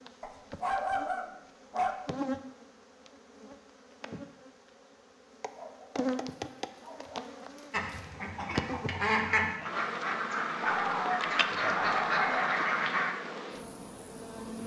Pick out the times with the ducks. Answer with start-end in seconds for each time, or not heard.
7.7-13.2.